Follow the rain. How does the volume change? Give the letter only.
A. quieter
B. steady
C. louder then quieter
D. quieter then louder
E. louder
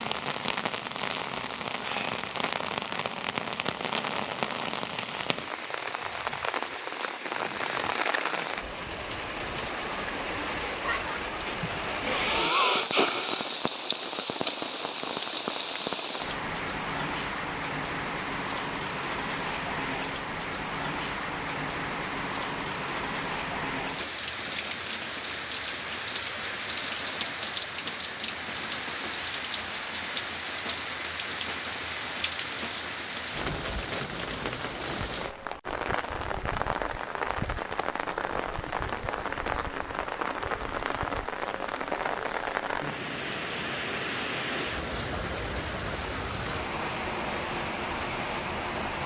B.